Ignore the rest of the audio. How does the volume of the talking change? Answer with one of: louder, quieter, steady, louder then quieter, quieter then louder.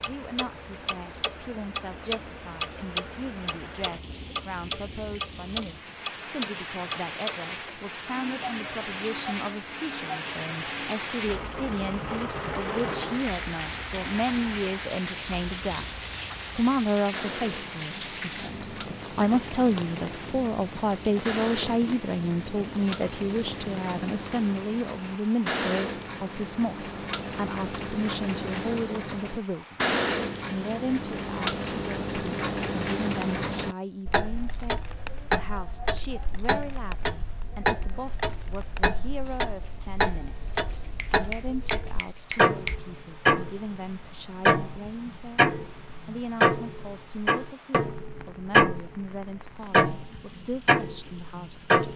louder then quieter.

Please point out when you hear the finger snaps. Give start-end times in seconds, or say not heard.
41.0-42.8.